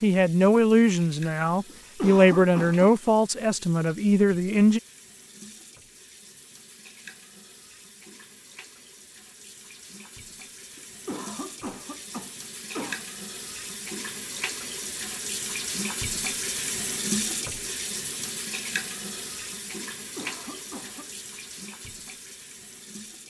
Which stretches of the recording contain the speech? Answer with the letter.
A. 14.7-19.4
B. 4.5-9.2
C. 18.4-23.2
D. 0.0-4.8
D.